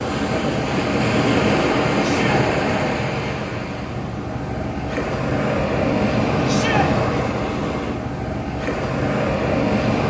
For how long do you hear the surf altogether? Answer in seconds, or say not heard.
10 s.